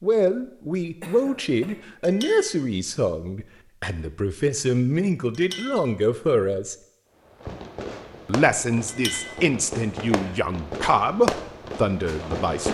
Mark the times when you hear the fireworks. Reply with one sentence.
You can hear the fireworks from 7.2 to 12.6 s.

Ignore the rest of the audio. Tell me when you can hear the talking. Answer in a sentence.
The talking can be heard from 0.0 to 6.8 s and from 8.2 to 12.6 s.